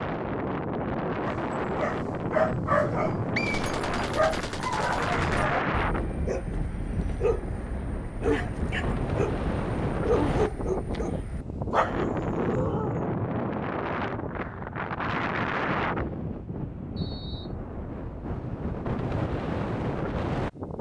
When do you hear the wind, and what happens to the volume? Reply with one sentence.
You can hear the wind from 0.0 to 20.7 s, at a steady volume.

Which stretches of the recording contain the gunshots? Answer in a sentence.
The gunshots can be heard from 3.5 to 5.5 s.